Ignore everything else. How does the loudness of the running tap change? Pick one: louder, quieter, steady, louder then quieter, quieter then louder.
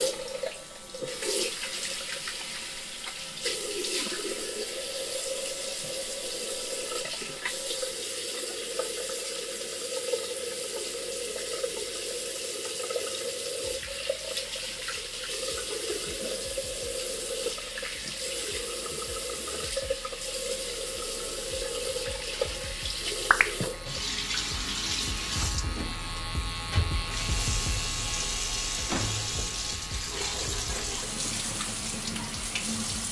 steady.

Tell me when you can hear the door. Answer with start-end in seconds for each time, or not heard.
28.9-29.3.